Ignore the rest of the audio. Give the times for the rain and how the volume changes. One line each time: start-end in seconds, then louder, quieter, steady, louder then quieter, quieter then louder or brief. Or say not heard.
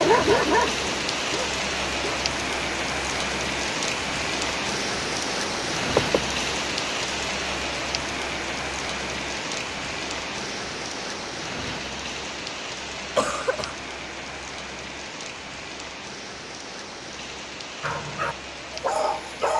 0.0-19.5 quieter.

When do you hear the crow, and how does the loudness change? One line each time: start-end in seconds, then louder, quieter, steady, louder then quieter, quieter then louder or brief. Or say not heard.
not heard.